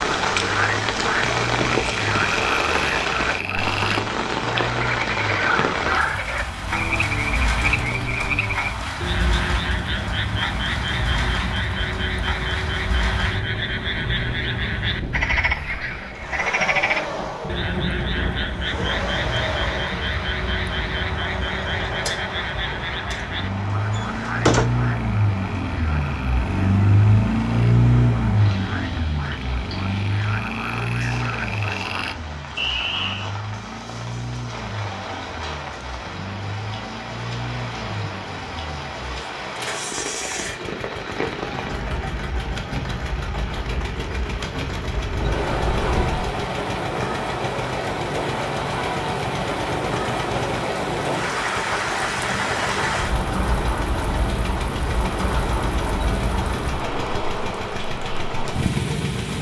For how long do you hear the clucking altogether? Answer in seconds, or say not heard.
not heard.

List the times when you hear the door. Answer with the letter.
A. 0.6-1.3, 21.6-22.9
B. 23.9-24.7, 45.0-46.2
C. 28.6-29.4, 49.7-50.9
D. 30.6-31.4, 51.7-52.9
B.